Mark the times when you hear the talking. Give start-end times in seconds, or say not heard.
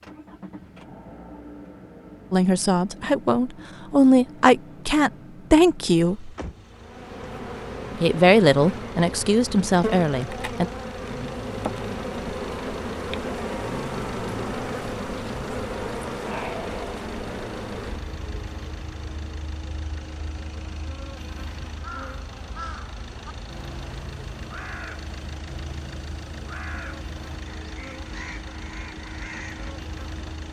2.3-6.3, 8.0-10.7.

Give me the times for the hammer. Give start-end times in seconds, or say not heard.
not heard.